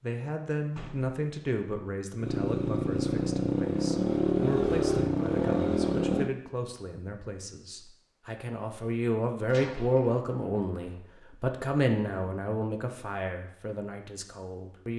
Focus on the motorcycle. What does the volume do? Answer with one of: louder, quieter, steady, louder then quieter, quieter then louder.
steady.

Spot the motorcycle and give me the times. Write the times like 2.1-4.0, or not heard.
2.1-6.3.